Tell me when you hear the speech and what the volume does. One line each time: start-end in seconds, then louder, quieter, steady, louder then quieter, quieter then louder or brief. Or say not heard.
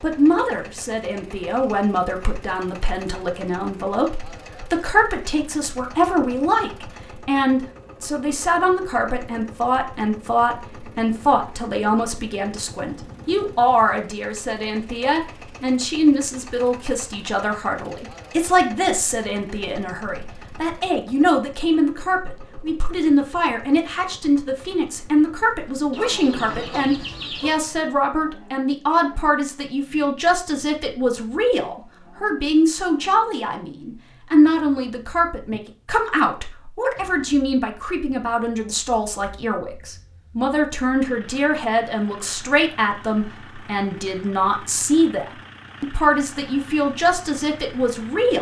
0.0-48.3 steady.